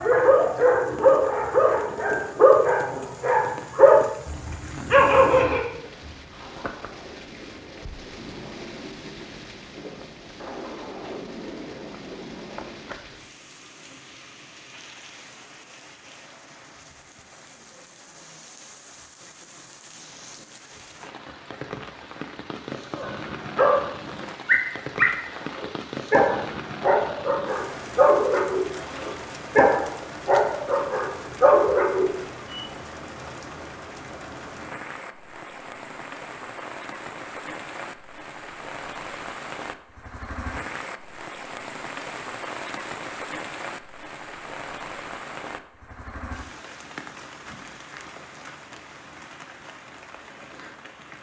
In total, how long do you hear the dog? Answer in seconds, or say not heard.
15 s.